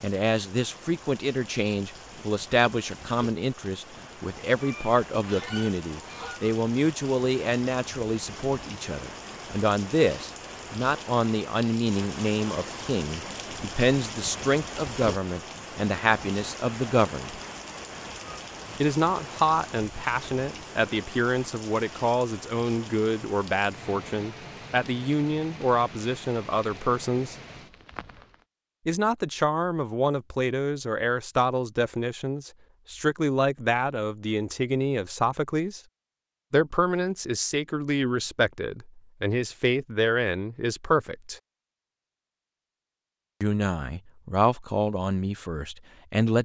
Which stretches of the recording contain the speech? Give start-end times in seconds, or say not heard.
0.0-17.4, 18.8-27.4, 28.9-35.8, 36.5-41.4, 43.4-46.4.